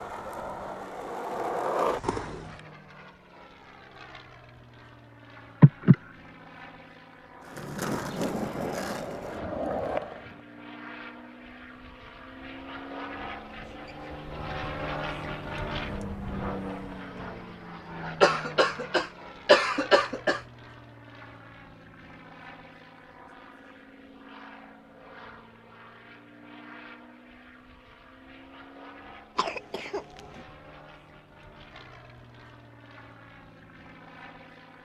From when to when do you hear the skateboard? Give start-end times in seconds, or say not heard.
0.0-2.6, 7.5-10.4.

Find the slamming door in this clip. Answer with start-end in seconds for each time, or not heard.
not heard.